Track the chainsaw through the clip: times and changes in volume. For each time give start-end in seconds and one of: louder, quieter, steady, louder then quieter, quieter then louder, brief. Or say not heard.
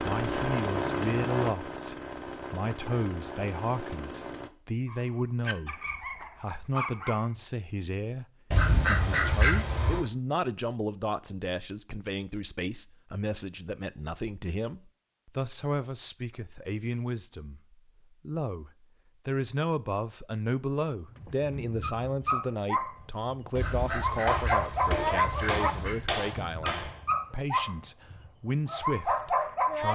0.0-4.5 quieter.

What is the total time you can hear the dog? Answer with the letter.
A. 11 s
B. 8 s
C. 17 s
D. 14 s
A.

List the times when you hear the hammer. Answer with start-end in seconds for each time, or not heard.
24.2-27.0.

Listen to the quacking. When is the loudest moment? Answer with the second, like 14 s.
9 s.